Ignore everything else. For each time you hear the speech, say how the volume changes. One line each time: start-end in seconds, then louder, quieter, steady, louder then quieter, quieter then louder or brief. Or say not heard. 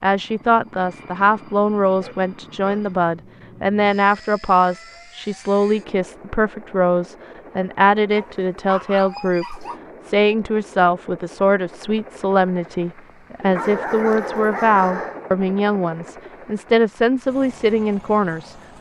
0.0-18.6 steady.